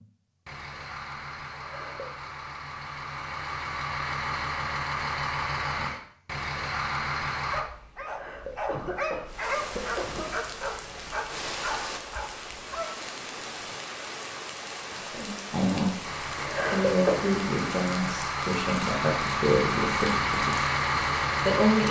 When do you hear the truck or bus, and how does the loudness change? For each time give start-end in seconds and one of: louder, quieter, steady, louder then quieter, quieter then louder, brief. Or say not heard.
0.0-7.7 louder
16.0-21.8 louder.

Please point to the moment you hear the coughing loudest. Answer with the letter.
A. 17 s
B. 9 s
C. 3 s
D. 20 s
A.